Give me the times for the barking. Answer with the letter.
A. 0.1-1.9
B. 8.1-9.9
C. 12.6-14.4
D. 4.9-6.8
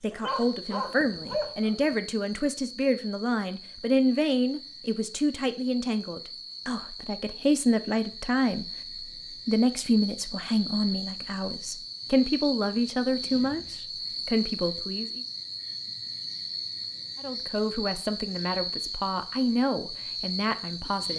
A.